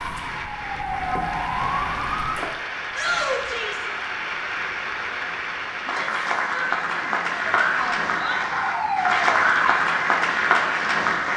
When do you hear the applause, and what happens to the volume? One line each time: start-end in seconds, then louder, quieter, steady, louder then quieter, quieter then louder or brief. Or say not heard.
0.0-11.3 louder.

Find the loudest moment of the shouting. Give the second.
3 s.